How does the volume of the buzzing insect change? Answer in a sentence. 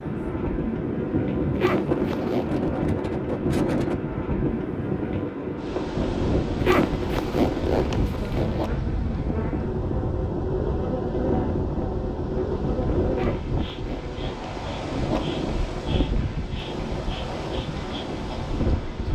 The loudness of the buzzing insect goes down.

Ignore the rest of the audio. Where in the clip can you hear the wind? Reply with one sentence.
The wind can be heard from 0.0 to 19.0 s.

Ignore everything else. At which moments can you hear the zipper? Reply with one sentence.
You can hear the zipper from 1.6 to 2.5 s, from 6.6 to 8.7 s and from 13.1 to 15.6 s.